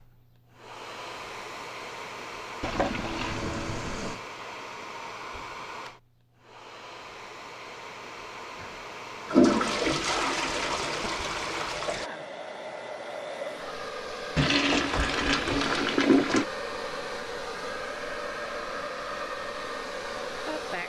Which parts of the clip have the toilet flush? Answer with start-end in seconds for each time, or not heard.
2.6-4.2, 9.3-12.1, 14.3-16.4.